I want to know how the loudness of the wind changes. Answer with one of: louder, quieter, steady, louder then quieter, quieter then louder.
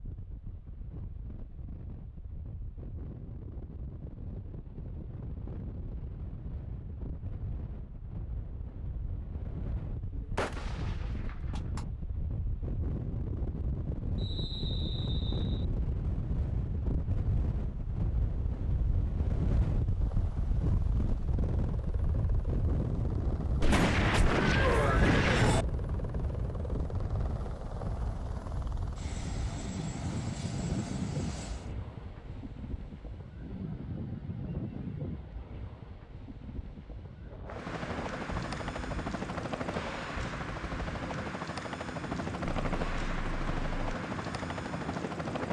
louder then quieter.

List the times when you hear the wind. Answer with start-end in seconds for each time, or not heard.
0.0-45.4.